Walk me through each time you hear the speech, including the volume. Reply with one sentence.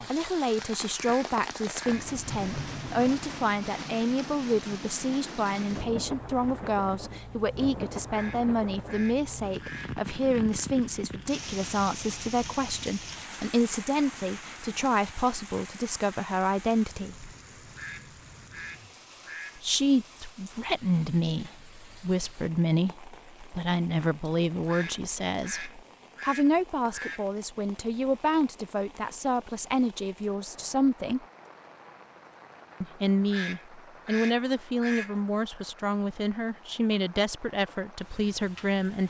The speech can be heard from 0.0 to 17.3 s, at a steady volume; from 19.6 to 31.2 s, at a steady volume; and from 32.8 to 39.0 s, at a steady volume.